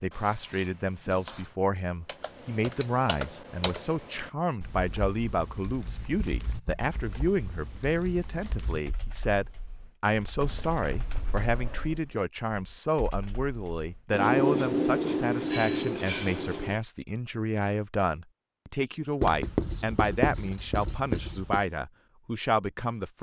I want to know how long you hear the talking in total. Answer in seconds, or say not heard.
23 s.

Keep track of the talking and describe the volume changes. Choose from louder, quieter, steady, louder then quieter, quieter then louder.
steady.